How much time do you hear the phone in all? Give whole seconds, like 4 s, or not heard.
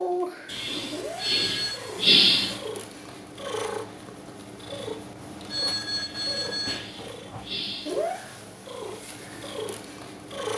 2 s.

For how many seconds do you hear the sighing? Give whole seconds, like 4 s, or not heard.
4 s.